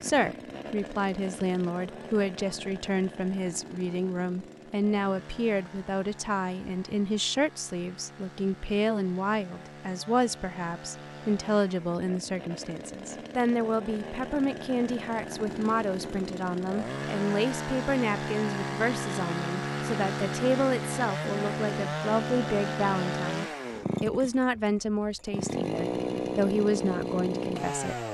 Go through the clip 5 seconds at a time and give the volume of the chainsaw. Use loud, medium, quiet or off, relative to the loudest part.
medium, quiet, medium, loud, loud, loud.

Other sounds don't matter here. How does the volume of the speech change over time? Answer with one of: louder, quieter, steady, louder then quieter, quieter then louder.
steady.